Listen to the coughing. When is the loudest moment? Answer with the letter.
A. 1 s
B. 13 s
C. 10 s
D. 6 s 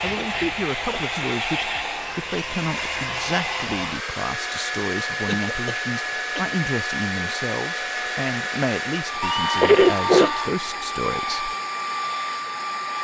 C.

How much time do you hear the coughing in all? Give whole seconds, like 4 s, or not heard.
4 s.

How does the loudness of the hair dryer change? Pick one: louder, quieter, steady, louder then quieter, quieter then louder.
steady.